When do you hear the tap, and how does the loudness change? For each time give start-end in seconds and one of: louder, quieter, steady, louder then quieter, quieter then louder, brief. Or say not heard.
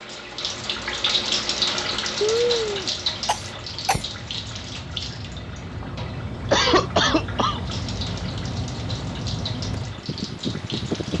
0.0-11.1 quieter.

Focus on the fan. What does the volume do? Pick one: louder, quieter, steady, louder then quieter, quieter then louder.
louder.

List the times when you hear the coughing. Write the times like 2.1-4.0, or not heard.
2.2-4.0, 6.5-7.6.